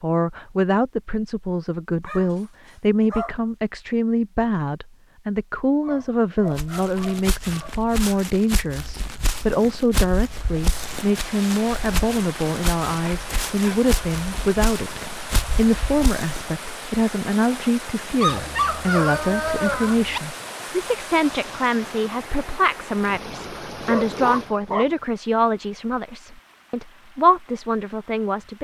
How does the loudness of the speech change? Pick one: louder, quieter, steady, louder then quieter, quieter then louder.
steady.